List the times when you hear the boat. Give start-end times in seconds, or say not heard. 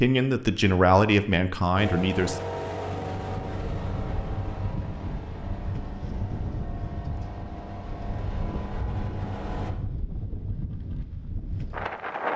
1.8-9.8.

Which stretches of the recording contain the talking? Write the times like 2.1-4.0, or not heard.
0.0-2.4.